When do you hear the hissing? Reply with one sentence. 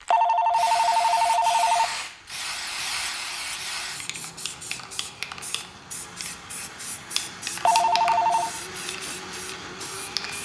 You can hear the hissing from 0.0 to 10.4 s.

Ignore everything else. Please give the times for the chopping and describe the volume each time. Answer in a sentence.
You can't hear the chopping here.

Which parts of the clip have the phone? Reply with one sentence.
The phone can be heard from 0.1 to 1.9 s and from 7.7 to 8.5 s.